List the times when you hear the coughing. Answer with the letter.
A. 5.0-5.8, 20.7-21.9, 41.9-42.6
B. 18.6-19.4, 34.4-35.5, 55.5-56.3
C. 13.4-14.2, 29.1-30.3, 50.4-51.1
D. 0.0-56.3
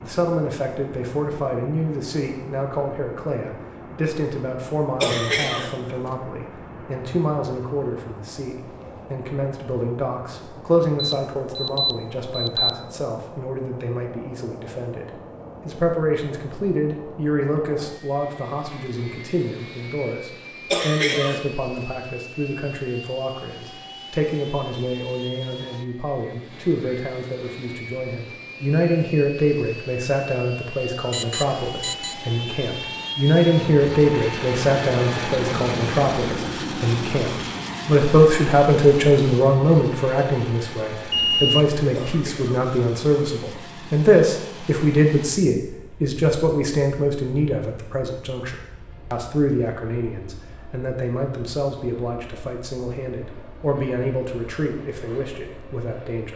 A.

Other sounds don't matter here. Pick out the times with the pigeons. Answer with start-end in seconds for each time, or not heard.
not heard.